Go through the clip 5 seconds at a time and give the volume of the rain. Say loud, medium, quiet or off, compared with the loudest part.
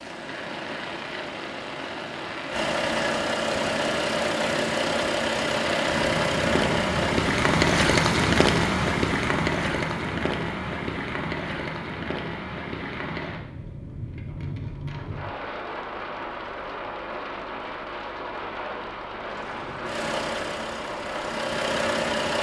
medium, loud, medium, medium, medium.